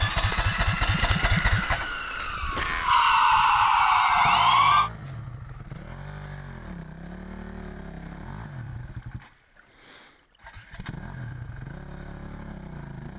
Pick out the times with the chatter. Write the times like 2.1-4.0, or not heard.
not heard.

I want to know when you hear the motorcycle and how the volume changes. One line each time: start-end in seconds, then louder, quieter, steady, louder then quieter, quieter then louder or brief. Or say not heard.
0.0-13.1 quieter.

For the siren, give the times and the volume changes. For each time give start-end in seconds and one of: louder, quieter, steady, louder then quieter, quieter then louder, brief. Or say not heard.
0.0-4.9 louder.